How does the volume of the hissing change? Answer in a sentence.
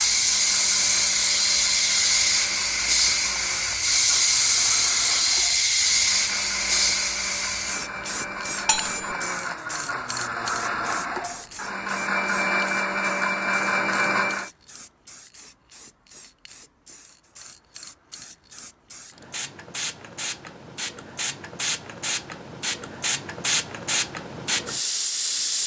The volume of the hissing goes down, then up.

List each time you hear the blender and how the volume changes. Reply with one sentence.
The blender can be heard from 0.0 to 14.5 s, getting louder.